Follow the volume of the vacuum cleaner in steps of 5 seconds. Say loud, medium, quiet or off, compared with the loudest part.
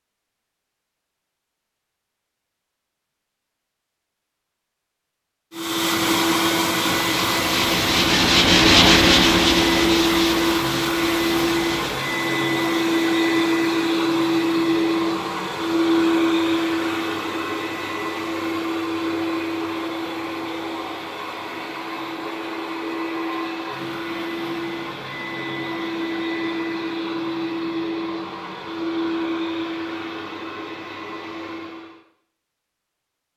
off, loud, loud, loud, medium, medium, quiet.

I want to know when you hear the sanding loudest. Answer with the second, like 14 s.
9 s.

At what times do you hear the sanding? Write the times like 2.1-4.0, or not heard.
7.1-12.0.